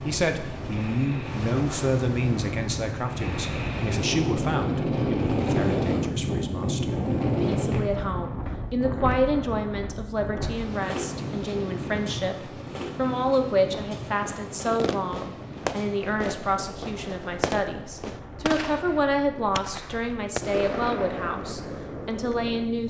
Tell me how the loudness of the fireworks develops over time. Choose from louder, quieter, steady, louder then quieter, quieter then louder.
steady.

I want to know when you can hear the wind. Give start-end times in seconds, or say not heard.
0.0-22.8.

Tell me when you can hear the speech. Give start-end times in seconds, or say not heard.
0.0-22.8.